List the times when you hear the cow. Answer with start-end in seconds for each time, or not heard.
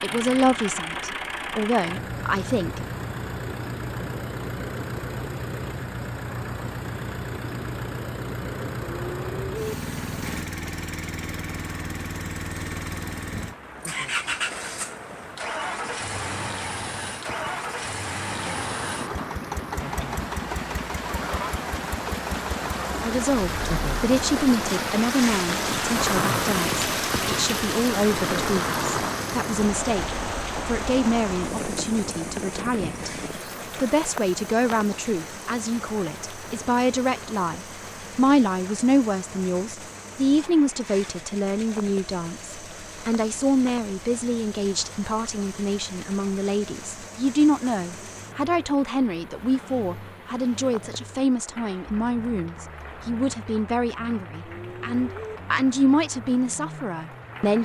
9.1-9.8, 54.5-55.4.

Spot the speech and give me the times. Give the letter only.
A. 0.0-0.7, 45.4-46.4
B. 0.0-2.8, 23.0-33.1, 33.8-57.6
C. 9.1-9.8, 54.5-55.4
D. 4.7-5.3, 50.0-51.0
B.